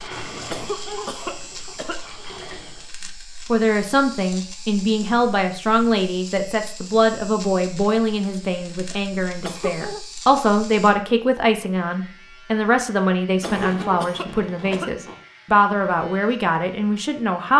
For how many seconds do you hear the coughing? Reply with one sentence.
The coughing can be heard for 4 seconds in total.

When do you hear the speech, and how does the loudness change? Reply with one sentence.
The speech can be heard from 3.5 to 17.5 s, at a steady volume.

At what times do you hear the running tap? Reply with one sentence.
The running tap can be heard from 0.0 to 2.9 s.